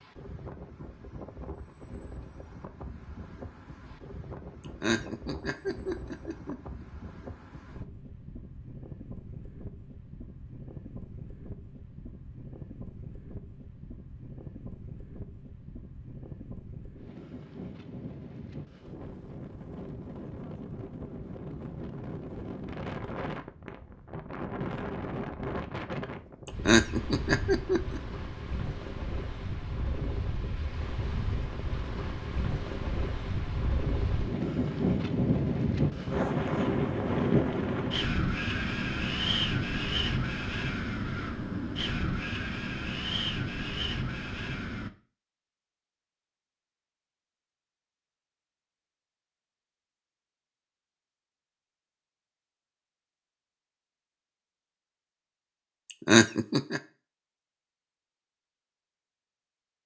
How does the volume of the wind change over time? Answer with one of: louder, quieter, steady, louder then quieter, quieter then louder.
louder.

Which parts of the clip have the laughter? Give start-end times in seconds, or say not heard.
4.6-6.8, 26.4-28.0, 55.9-56.8.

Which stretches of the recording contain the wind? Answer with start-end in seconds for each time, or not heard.
0.0-44.9.